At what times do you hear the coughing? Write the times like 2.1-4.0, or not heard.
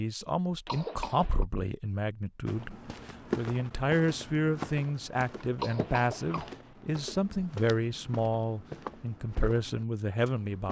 0.7-1.4, 5.5-6.5.